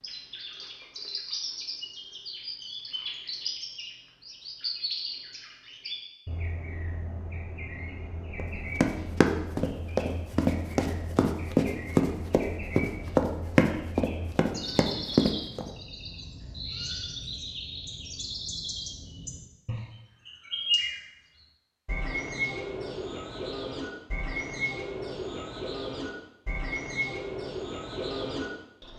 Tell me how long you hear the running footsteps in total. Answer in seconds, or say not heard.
7 s.